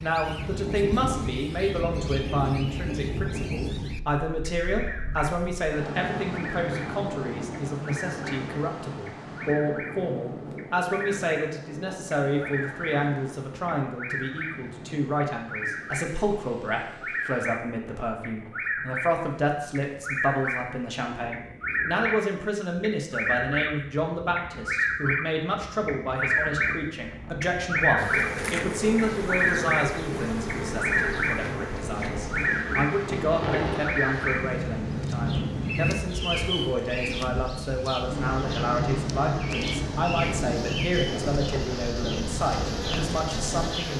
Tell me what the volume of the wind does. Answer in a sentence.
The loudness of the wind goes down, then up.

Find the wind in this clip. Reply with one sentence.
The wind can be heard from 0.0 to 43.9 s.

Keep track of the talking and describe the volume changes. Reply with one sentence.
The volume of the talking stays about the same.